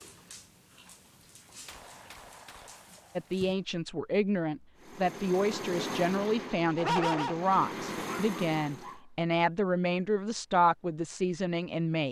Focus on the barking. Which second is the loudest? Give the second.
7 s.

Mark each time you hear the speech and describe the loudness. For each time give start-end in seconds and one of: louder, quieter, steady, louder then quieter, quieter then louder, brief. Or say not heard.
3.1-12.0 steady.